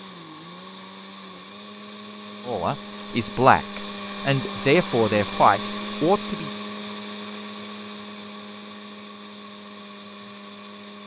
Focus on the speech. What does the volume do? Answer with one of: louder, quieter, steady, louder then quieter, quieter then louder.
steady.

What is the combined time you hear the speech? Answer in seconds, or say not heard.
4 s.